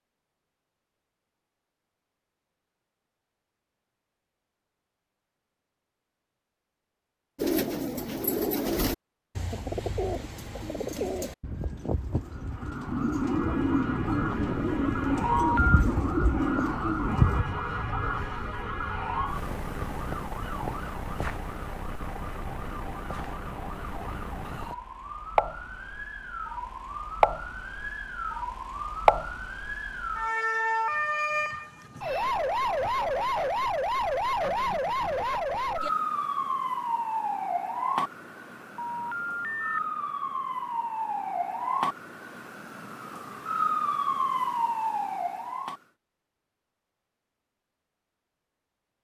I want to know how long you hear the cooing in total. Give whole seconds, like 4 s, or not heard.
10 s.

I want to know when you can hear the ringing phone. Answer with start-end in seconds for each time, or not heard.
15.2-15.8, 38.8-39.8.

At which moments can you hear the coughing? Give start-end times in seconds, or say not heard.
not heard.